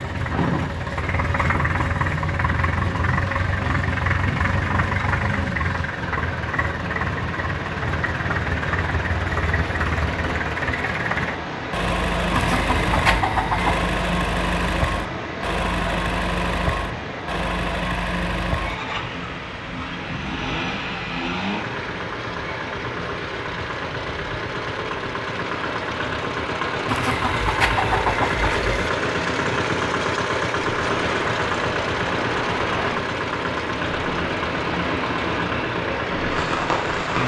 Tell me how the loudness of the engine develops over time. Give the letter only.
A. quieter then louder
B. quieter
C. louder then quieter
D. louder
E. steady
E.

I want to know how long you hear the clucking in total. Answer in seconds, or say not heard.
4 s.